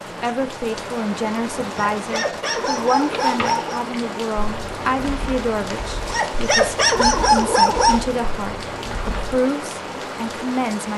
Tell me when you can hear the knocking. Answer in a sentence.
The knocking can't be heard in this clip.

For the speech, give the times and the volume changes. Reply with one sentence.
The speech can be heard from 0.2 to 10.9 s, at a steady volume.